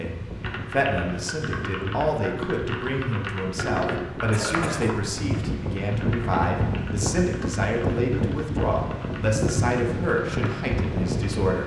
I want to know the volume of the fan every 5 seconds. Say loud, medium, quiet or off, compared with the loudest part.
medium, loud, loud.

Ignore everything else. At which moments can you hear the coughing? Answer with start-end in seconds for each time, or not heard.
4.3-5.0.